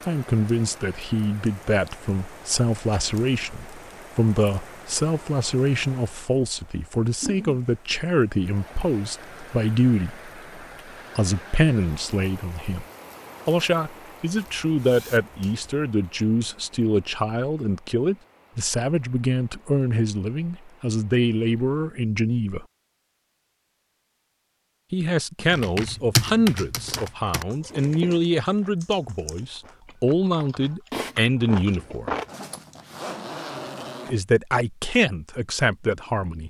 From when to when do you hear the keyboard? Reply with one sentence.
The keyboard can be heard from 25.5 to 31.8 s.